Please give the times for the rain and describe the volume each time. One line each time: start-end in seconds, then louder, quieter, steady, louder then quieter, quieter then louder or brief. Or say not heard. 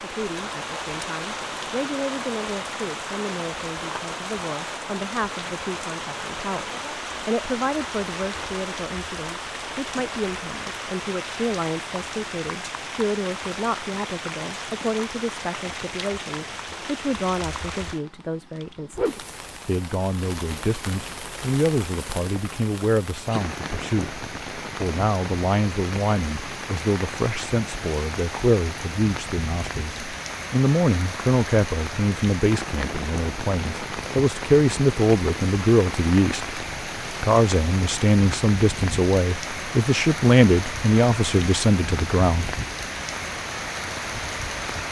0.0-44.8 steady.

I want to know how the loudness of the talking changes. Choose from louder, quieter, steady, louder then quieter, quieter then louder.
louder.